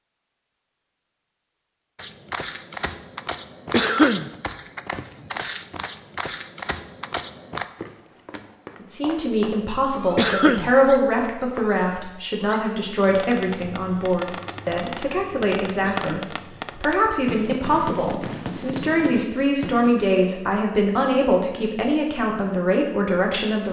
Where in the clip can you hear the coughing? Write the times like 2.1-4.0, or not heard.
3.7-4.3, 10.2-10.7, 15.9-16.4.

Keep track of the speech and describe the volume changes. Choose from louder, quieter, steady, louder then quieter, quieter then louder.
steady.